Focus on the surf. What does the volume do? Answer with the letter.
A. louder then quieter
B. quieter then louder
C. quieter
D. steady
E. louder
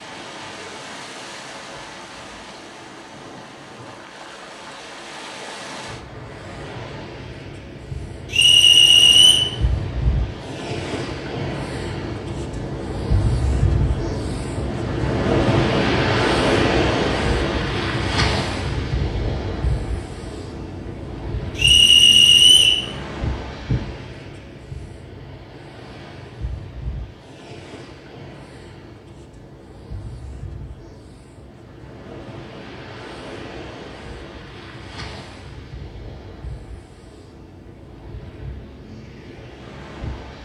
A.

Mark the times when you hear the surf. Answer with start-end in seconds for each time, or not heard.
0.0-40.4.